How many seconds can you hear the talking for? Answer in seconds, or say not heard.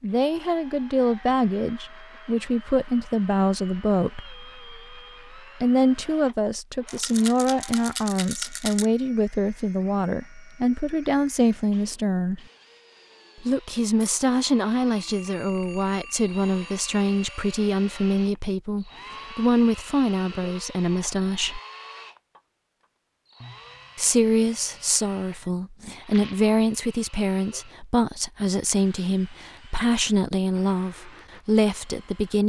29 s.